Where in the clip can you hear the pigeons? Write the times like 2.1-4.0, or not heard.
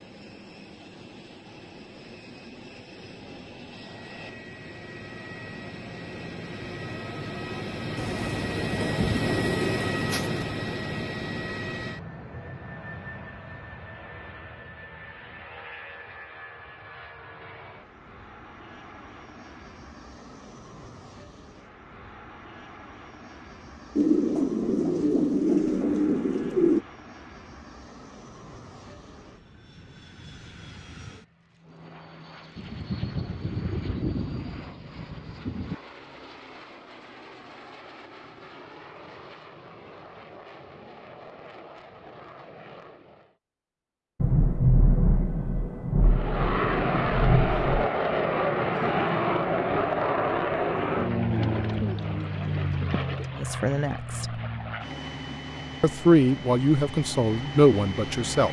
8.0-10.4, 23.9-26.9, 51.2-53.2.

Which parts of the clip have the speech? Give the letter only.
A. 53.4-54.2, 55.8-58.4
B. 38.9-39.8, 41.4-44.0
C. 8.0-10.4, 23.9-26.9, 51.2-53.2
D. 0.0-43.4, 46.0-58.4
A.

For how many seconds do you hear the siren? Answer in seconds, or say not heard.
not heard.